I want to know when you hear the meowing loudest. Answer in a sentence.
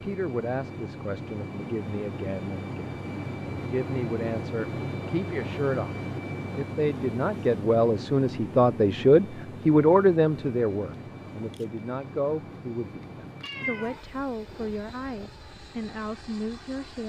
The loudest moment of the meowing is at 14 seconds.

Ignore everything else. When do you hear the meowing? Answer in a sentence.
The meowing can be heard from 13.4 to 15.3 s.